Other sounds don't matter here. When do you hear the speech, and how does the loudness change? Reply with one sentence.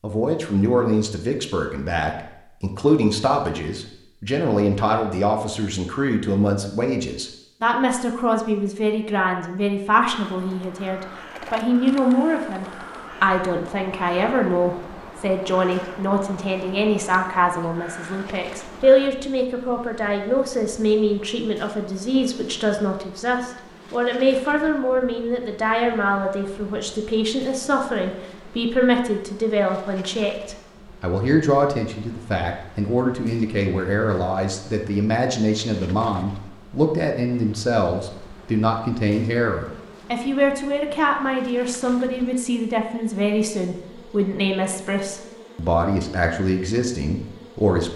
The speech can be heard from 0.0 to 47.9 s, at a steady volume.